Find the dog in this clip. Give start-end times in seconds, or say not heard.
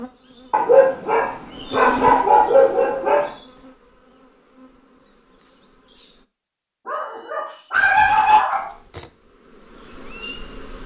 0.5-3.2, 6.8-8.7.